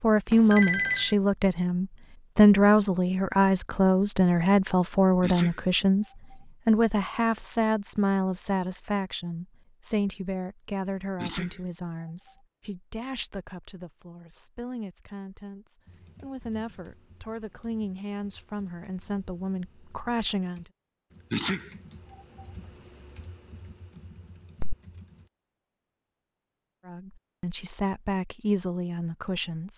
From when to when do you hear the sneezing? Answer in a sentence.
You can hear the sneezing from 5.2 to 6.3 s, from 11.2 to 12.3 s and from 21.3 to 22.4 s.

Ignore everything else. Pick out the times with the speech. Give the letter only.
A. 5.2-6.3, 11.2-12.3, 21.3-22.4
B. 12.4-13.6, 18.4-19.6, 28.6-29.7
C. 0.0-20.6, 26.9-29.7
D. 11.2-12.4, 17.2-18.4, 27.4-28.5
C.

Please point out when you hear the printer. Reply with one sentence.
You can't hear the printer here.